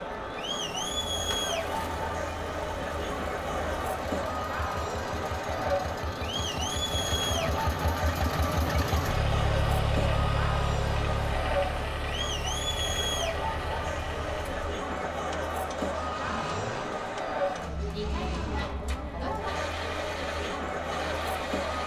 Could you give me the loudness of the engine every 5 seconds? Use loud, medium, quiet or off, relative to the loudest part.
medium, loud, loud, medium, medium.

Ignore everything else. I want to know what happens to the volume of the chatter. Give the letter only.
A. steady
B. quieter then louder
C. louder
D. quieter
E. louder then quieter
A.